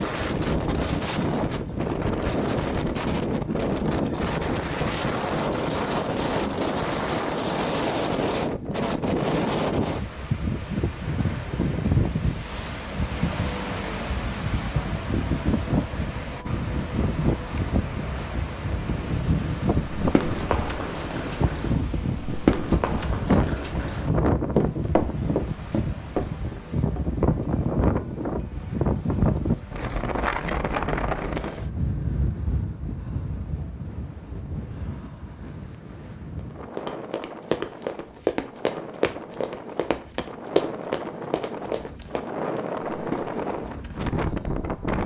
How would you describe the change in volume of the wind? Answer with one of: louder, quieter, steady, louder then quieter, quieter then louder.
quieter.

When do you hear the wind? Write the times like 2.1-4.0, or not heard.
0.0-45.0.